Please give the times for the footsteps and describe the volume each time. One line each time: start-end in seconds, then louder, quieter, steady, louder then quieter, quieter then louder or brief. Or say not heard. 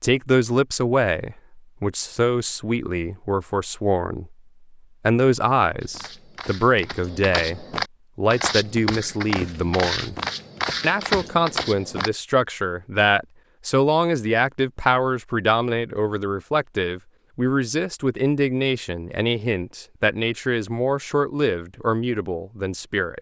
5.8-12.1 louder.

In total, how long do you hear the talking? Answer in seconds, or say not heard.
22 s.